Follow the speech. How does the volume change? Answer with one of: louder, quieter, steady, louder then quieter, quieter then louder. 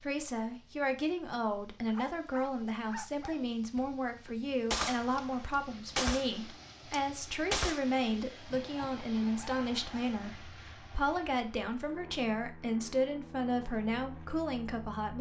steady.